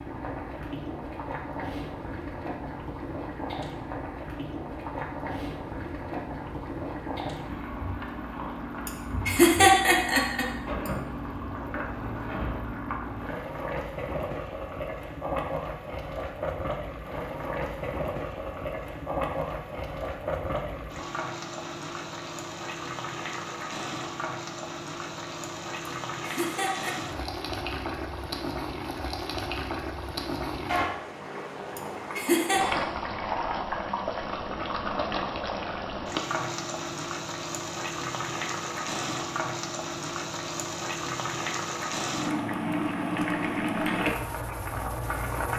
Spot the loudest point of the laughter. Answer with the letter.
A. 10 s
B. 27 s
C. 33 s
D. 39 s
A.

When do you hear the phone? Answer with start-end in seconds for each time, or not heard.
not heard.